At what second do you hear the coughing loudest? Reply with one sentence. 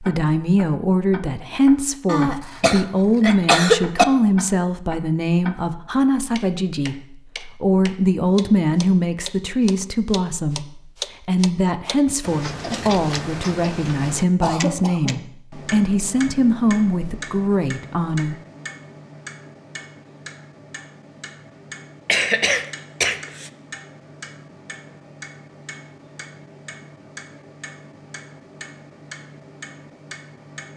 The loudest moment of the coughing is at 4 seconds.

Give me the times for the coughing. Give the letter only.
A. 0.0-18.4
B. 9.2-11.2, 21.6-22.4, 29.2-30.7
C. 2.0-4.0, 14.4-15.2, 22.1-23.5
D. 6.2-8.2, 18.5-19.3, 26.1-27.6
C.